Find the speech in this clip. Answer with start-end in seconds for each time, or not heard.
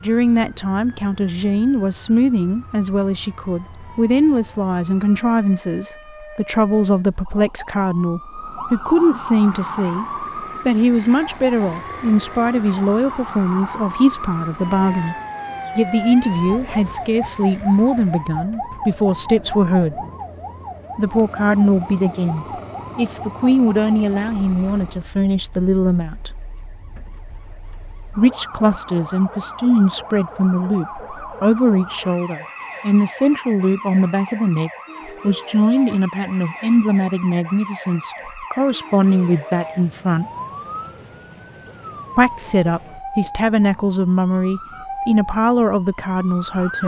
0.0-10.1, 10.7-15.2, 15.8-20.0, 20.9-26.3, 28.1-40.2, 42.1-46.8.